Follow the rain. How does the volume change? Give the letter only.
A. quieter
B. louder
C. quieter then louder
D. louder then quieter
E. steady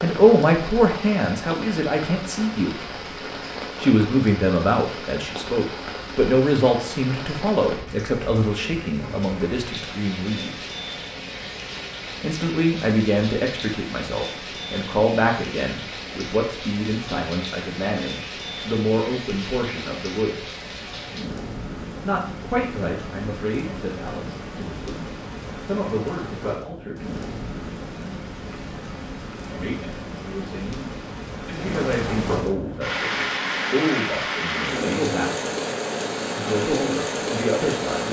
B.